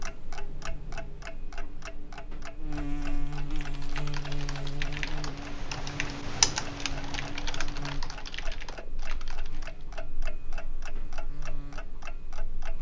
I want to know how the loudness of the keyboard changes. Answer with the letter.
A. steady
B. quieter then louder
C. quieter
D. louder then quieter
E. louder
D.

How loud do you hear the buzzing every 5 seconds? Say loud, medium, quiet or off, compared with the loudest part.
loud, loud, quiet.